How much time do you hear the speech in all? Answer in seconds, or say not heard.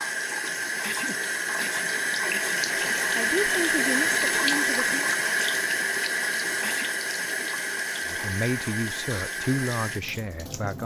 5 s.